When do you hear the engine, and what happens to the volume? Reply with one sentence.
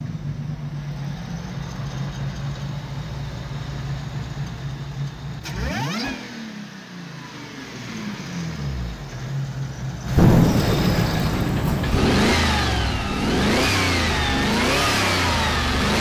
You can hear the engine from 0.0 to 15.9 s, getting louder.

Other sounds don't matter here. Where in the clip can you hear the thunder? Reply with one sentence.
The thunder can be heard from 10.2 to 12.2 s.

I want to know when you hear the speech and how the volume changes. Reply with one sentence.
You can't hear the speech here.